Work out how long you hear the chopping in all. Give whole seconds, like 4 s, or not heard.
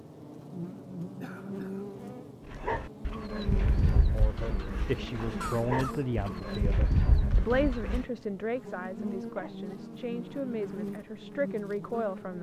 not heard.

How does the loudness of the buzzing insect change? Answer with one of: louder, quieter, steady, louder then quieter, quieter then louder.
steady.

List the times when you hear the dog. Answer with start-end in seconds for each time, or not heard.
2.5-8.1.